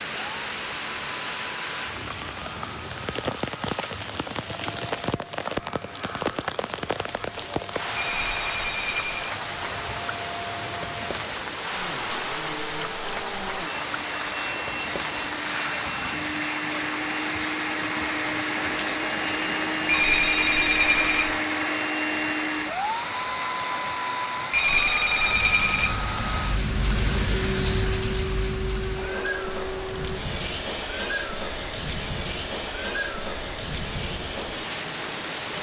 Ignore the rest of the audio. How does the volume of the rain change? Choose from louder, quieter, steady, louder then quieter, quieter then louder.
steady.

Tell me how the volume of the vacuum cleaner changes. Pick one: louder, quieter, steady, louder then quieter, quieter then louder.
louder then quieter.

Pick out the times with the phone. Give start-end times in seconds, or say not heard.
8.0-9.3, 19.9-21.4, 24.5-26.0.